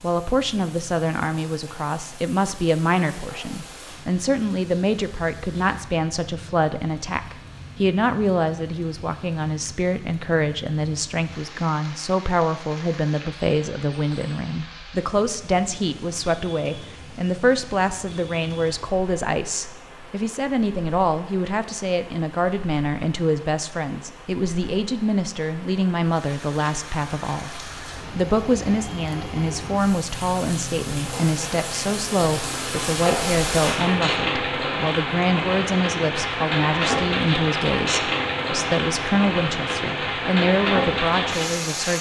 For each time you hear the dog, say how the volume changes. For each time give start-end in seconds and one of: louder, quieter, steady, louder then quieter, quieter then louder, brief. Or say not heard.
not heard.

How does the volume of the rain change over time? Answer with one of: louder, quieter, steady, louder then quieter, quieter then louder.
louder.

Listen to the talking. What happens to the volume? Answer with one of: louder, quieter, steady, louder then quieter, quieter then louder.
steady.